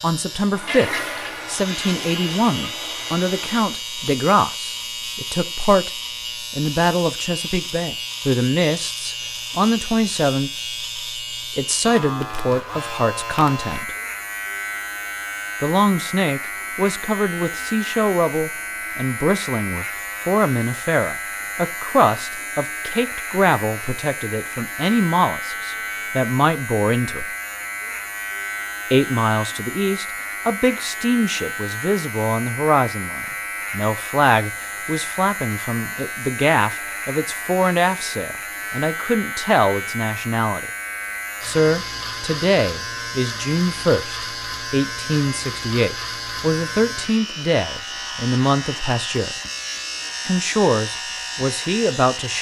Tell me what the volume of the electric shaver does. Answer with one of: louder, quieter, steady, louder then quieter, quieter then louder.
steady.